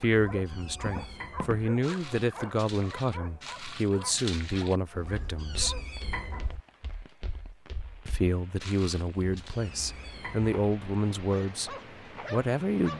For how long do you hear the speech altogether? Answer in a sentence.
You can hear the speech for 11 seconds altogether.